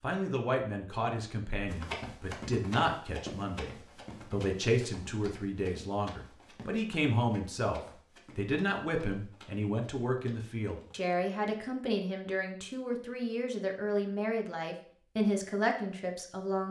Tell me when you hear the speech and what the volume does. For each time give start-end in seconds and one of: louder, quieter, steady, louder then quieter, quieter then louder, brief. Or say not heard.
0.0-16.6 steady.